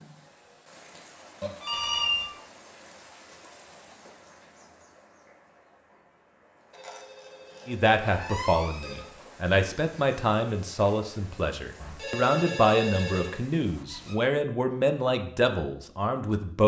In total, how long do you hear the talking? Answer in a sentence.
The talking can be heard for 9 seconds in total.